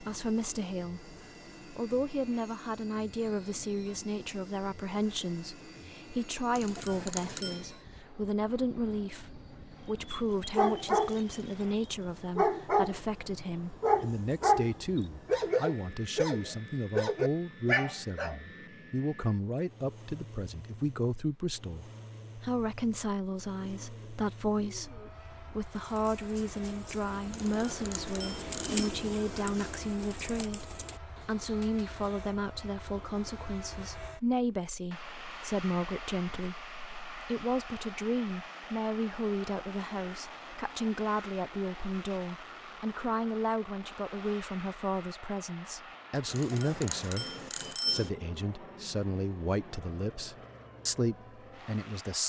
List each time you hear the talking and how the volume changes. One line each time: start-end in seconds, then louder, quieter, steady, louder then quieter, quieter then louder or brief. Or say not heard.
0.0-52.2 steady.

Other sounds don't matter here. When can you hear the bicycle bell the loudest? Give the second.
48 s.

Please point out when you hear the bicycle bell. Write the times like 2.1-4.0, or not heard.
6.5-7.7, 27.3-28.9, 46.2-48.1.